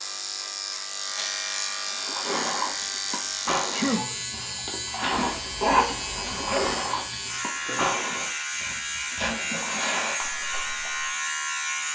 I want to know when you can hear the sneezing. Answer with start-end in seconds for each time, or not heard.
3.7-4.2, 9.2-10.1.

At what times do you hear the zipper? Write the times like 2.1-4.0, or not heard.
5.2-6.8.